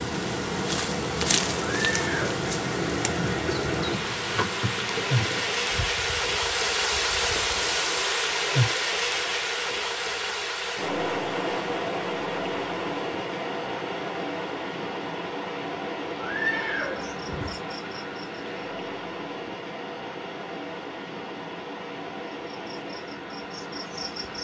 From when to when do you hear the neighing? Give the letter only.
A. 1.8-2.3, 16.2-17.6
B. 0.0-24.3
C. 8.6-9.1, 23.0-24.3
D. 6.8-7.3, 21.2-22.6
A.